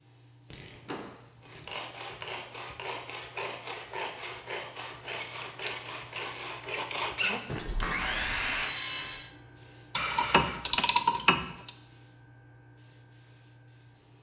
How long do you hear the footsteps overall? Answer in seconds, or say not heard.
not heard.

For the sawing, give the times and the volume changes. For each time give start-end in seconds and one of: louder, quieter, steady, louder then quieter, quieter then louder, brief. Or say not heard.
1.4-9.3 louder.